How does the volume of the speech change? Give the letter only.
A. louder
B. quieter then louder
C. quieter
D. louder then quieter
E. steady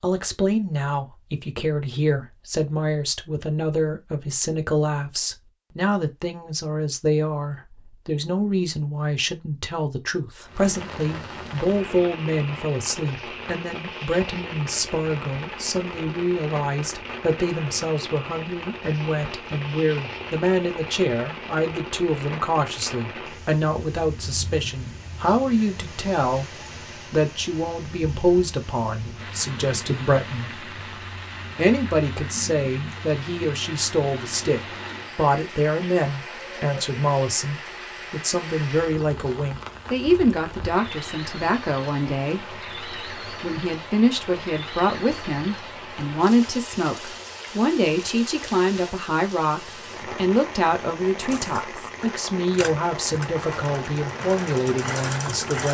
E.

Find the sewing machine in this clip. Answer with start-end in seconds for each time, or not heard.
51.2-55.7.